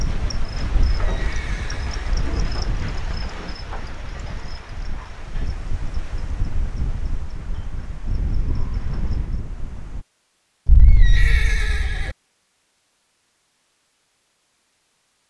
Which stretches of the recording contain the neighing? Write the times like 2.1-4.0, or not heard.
0.7-2.0, 10.7-12.1.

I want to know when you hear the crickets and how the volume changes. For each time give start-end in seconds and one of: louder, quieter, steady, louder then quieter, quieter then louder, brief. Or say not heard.
0.0-9.4 quieter.